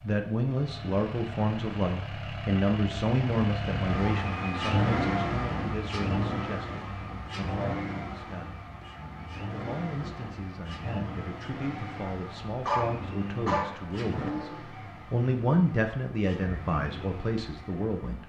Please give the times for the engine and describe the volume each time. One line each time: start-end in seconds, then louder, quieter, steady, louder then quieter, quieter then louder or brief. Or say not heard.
0.0-18.2 louder then quieter.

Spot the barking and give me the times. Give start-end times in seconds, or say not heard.
12.7-13.8.